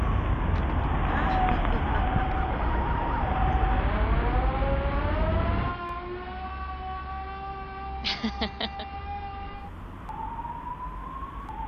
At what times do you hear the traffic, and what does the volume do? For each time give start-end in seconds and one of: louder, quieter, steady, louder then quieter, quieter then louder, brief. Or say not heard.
0.0-11.6 quieter.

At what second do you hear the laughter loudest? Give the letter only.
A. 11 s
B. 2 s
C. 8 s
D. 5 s
C.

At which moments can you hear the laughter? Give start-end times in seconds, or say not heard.
0.6-2.2, 8.0-8.8.